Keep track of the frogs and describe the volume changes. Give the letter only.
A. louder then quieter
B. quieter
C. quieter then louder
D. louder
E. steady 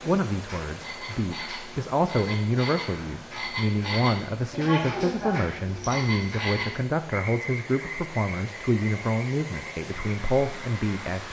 A.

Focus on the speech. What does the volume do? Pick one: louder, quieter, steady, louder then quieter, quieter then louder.
steady.